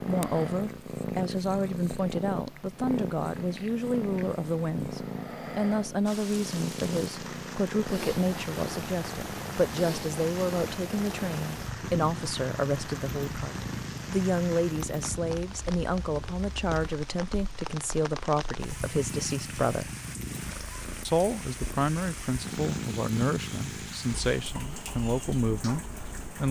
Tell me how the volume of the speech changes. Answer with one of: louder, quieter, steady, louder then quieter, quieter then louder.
steady.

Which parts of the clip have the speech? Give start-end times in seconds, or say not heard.
0.1-19.9, 21.1-26.4.